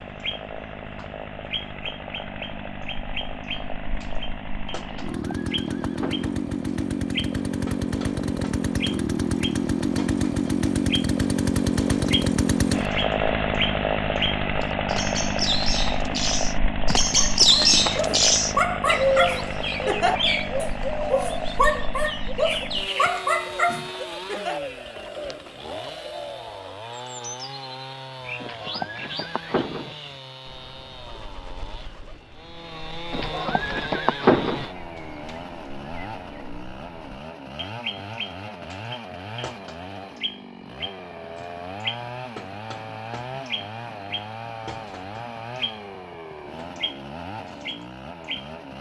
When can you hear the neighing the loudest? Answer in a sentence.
The volume of the neighing peaks at 34 seconds.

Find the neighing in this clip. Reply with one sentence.
You can hear the neighing from 5.0 to 6.3 s, from 28.4 to 29.9 s and from 33.1 to 34.6 s.